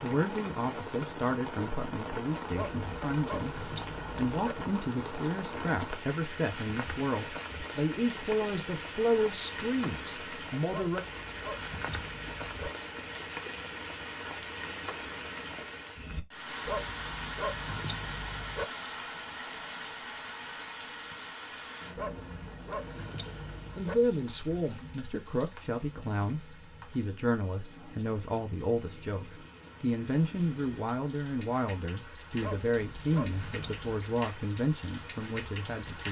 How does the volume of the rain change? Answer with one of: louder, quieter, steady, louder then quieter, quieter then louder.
quieter.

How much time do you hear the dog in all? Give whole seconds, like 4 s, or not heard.
10 s.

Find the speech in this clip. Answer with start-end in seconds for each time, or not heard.
0.0-11.1, 23.8-36.0.